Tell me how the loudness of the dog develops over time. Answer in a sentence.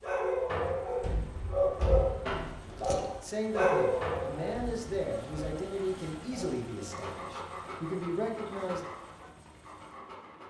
The volume of the dog goes down.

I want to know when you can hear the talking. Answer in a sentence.
You can hear the talking from 3.2 to 8.8 s.